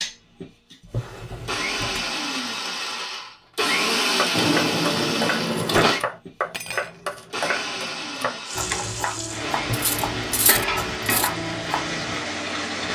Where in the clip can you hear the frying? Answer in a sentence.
The frying can be heard from 8.4 to 12.9 s.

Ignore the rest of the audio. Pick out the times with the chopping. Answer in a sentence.
The chopping can be heard from 4.2 to 12.2 s.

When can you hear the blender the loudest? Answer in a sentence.
The loudest moment of the blender is at 4 seconds.